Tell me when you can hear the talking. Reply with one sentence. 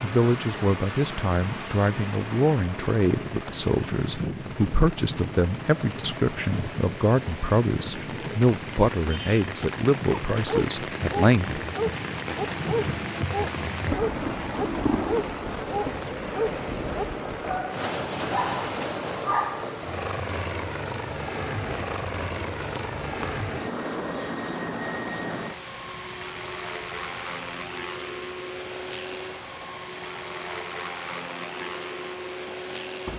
The talking can be heard from 0.0 to 11.6 s.